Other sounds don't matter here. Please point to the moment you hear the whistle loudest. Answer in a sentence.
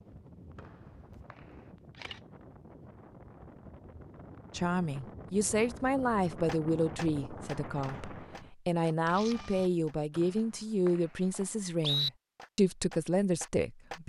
The loudest moment of the whistle is at 12 seconds.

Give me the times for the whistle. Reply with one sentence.
You can hear the whistle from 0.6 to 1.4 s and from 10.2 to 12.1 s.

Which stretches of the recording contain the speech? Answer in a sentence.
The speech can be heard from 4.5 to 14.0 s.